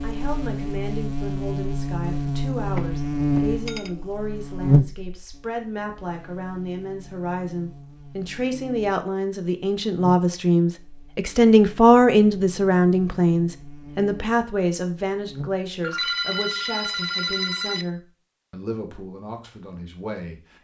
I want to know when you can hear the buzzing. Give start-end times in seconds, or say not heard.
0.0-15.7.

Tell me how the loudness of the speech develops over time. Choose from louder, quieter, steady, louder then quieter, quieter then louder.
louder then quieter.